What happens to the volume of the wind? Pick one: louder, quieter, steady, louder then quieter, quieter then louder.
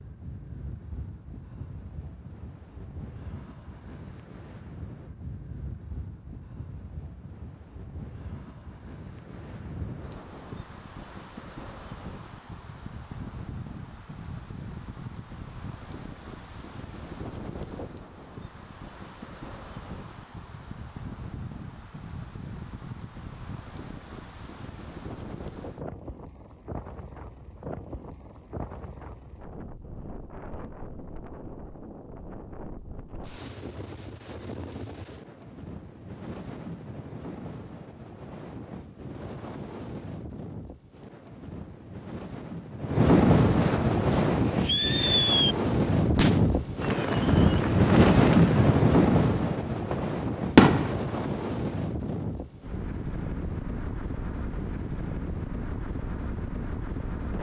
louder.